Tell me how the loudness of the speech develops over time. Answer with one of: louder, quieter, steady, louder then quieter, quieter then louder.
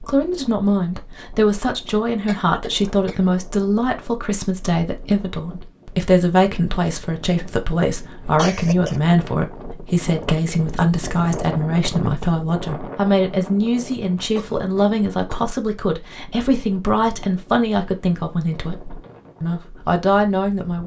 steady.